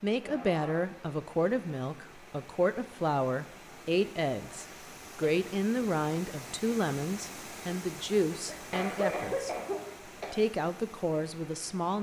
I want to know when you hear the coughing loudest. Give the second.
9 s.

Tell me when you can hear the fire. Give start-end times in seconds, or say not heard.
not heard.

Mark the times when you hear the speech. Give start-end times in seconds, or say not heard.
0.0-9.5, 10.3-11.9.